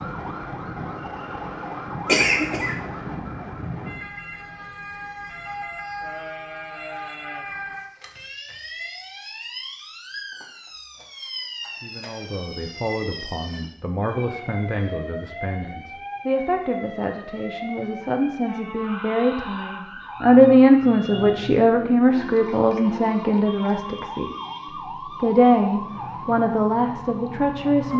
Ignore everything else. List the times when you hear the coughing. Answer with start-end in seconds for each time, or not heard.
2.0-2.8.